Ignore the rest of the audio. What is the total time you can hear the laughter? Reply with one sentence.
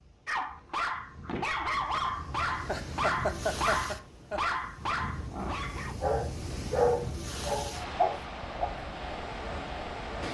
The laughter can be heard for 2 seconds in total.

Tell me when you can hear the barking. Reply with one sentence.
The barking can be heard from 0.2 to 8.7 s.